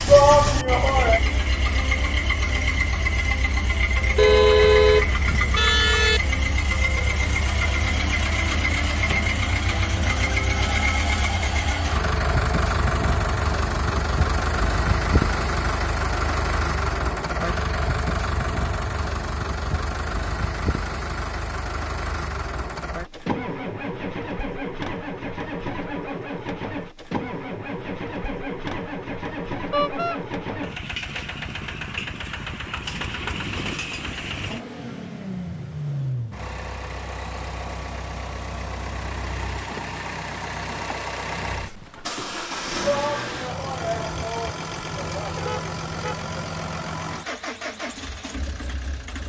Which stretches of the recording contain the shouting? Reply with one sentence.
The shouting can be heard from 0.1 to 1.2 s and from 42.8 to 45.4 s.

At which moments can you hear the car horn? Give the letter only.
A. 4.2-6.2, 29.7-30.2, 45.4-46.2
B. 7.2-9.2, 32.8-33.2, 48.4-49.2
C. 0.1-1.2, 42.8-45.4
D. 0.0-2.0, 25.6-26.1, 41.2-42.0
A.